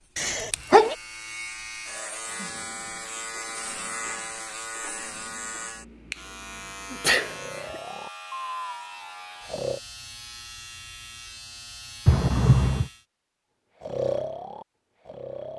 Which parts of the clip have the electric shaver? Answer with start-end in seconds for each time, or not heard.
0.0-13.1.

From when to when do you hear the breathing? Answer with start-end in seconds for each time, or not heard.
7.2-9.8, 13.8-15.5.